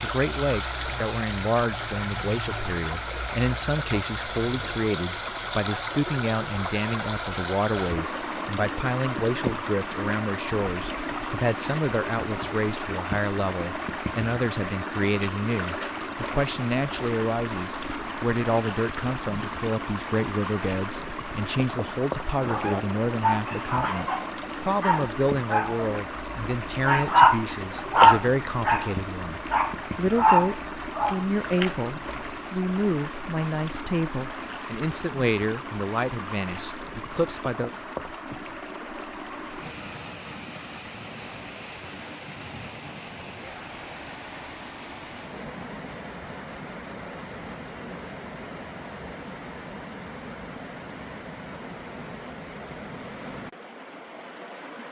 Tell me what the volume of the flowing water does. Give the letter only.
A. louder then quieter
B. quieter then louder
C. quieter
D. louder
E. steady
C.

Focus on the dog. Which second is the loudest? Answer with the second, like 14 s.
28 s.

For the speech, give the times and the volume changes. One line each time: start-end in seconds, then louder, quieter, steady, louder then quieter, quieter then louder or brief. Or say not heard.
0.0-37.7 steady.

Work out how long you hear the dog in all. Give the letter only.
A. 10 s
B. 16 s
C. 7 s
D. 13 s
A.